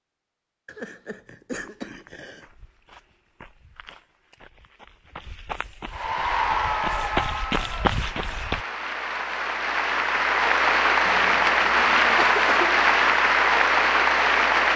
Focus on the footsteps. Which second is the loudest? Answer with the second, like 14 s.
8 s.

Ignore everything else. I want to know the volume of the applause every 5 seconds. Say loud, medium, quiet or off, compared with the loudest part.
off, medium, loud.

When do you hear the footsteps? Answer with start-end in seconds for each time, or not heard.
1.5-8.7.